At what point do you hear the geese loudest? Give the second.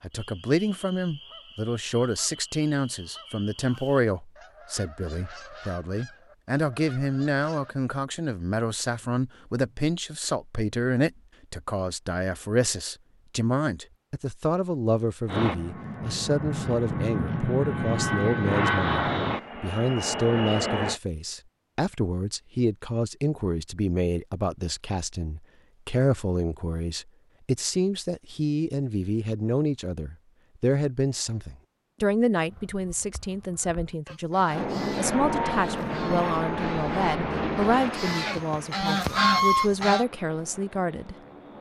39 s.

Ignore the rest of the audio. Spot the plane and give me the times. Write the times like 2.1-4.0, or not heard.
15.2-21.0, 34.5-41.5.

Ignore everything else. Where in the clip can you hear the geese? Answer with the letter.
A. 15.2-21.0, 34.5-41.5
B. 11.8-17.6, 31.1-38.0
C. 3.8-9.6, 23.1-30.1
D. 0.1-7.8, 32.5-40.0
D.